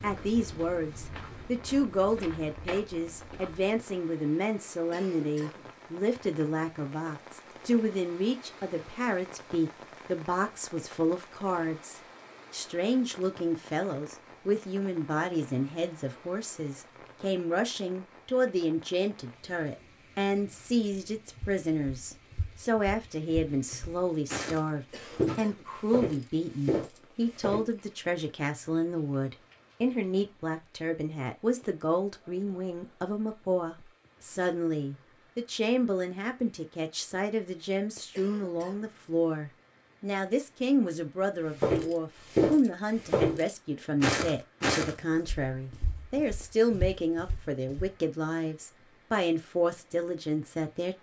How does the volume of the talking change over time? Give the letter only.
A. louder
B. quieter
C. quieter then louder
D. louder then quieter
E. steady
E.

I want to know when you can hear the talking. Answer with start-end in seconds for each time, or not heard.
0.0-50.9.